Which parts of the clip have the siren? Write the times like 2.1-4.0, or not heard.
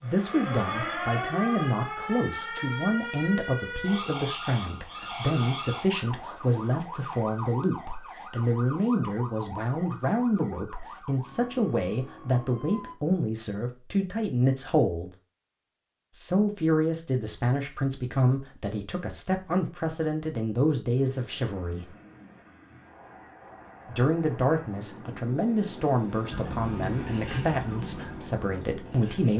0.0-12.9, 26.3-29.3.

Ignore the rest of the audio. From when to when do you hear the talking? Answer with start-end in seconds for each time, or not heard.
0.0-15.1, 16.1-21.9, 23.9-29.3.